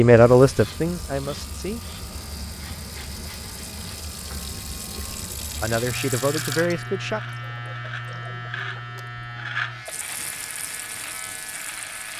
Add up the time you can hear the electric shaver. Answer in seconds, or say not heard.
12 s.